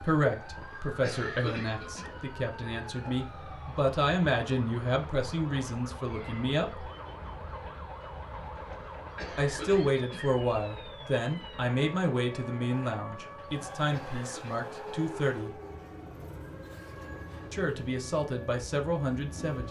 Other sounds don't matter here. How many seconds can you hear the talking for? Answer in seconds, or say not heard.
15 s.